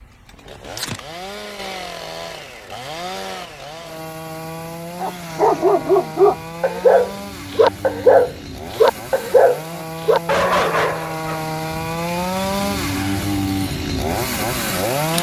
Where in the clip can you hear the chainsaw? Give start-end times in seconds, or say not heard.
0.0-15.1.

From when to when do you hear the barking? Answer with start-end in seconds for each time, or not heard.
5.0-11.4.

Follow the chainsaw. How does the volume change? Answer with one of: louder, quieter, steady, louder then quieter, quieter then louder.
louder.